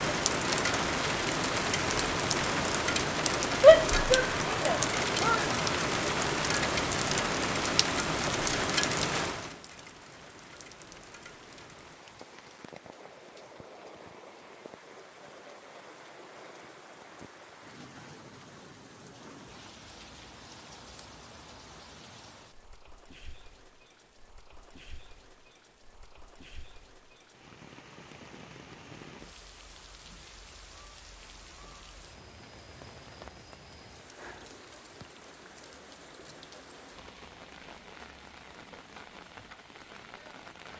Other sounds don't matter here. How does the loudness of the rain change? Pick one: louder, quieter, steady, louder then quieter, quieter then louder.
quieter.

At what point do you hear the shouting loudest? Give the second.
4 s.